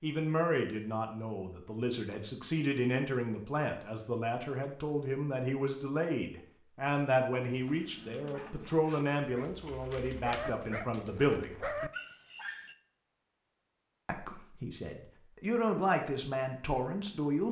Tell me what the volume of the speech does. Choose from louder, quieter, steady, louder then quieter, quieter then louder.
steady.